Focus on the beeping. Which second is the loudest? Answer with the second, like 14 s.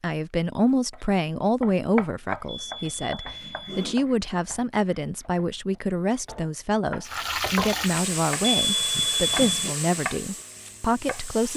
9 s.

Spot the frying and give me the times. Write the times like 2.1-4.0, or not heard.
7.0-11.5.